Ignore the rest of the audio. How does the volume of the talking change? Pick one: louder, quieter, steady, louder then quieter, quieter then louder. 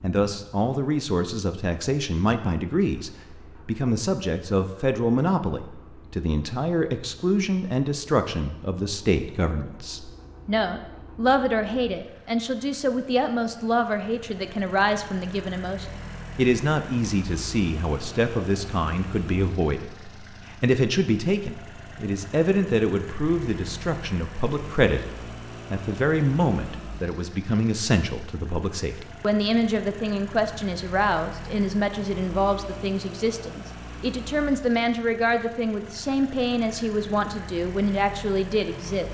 steady.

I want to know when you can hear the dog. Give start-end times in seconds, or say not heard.
not heard.